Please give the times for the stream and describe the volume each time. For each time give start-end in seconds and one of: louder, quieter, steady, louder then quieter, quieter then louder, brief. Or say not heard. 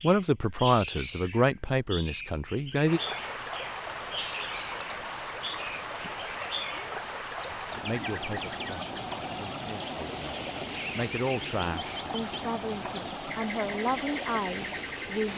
2.8-15.3 steady.